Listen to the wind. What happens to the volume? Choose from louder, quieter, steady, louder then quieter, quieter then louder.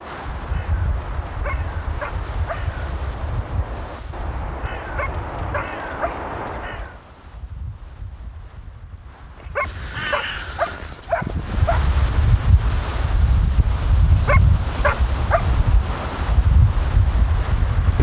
quieter then louder.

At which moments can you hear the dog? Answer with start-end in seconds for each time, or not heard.
1.2-2.6, 4.8-6.2, 9.4-11.8, 14.1-15.4.